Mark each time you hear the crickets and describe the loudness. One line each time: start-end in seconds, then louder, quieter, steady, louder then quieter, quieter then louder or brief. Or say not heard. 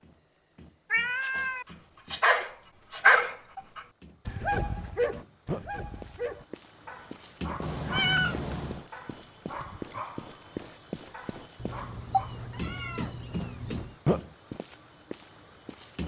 0.0-16.0 louder.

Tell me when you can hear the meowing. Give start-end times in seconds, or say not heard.
0.9-1.6, 7.6-8.8, 11.6-14.0.